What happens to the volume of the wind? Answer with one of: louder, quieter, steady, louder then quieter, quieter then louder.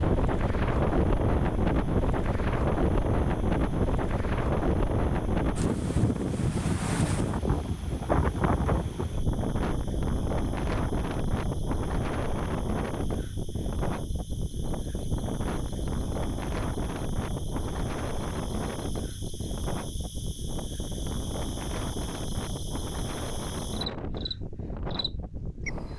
quieter.